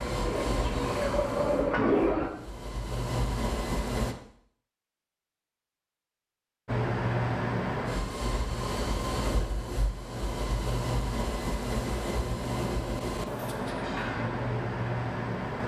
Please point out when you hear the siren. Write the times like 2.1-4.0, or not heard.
not heard.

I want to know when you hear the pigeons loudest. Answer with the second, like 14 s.
2 s.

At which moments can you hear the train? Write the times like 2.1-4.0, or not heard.
0.0-4.2, 6.7-15.6.